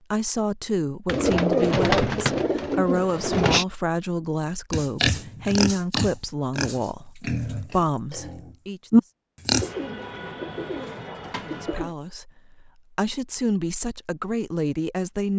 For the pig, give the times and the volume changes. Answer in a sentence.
You can hear the pig from 4.7 to 9.7 s, getting quieter then louder.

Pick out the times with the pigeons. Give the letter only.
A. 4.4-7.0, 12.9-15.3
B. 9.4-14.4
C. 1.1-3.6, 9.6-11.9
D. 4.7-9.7
C.